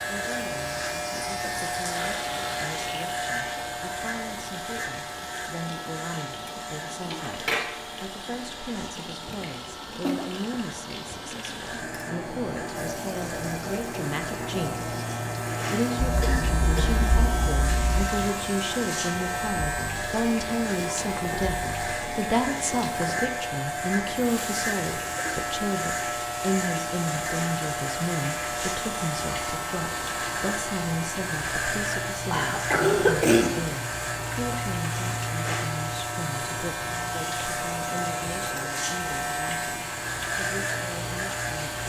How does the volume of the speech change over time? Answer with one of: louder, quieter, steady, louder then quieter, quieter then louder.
louder then quieter.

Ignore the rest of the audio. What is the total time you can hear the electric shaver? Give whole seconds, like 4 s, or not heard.
42 s.